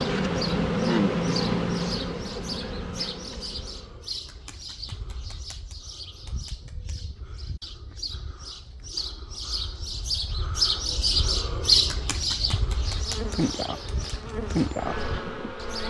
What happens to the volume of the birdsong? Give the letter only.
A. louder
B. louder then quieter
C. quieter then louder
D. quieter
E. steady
B.